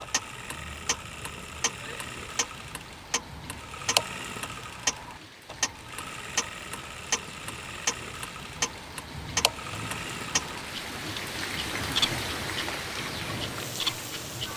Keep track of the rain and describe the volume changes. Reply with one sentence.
The loudness of the rain goes up.